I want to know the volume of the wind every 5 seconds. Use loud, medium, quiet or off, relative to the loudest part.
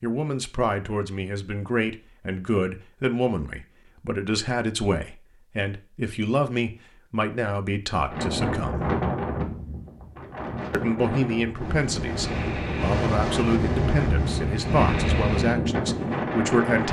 off, loud, loud, loud.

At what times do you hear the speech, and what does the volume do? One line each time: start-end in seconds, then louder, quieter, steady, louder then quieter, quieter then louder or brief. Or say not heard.
0.0-8.9 steady
10.7-16.8 steady.